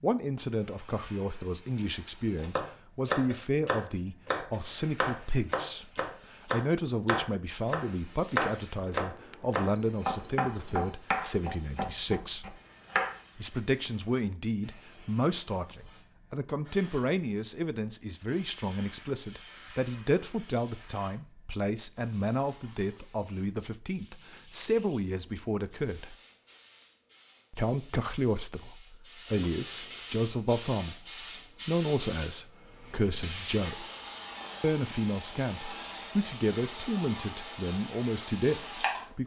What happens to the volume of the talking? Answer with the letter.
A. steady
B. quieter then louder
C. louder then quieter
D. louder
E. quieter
A.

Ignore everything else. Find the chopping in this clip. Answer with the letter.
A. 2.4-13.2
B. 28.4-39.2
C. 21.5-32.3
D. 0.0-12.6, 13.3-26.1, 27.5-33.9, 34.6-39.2
A.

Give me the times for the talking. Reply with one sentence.
The talking can be heard from 0.0 to 12.6 s, from 13.3 to 26.1 s, from 27.5 to 33.9 s and from 34.6 to 39.2 s.